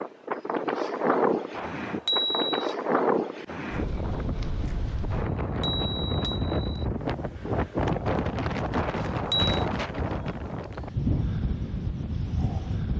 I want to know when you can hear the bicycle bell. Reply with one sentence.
You can hear the bicycle bell from 1.6 to 2.8 s, from 5.1 to 6.8 s and from 8.8 to 9.7 s.